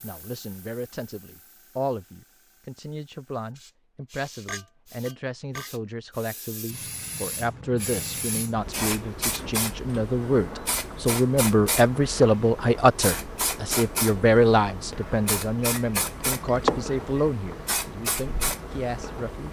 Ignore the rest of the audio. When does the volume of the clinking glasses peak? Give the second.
17 s.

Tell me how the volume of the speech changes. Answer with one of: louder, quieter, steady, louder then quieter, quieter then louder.
louder then quieter.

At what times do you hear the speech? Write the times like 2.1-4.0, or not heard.
0.0-19.4.